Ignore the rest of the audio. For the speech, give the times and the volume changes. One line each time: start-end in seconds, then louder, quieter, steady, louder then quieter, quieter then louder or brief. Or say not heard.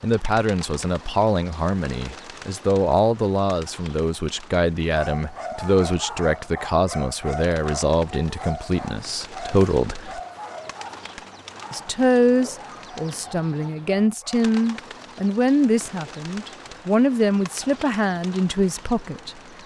0.0-10.2 steady
11.7-19.4 steady.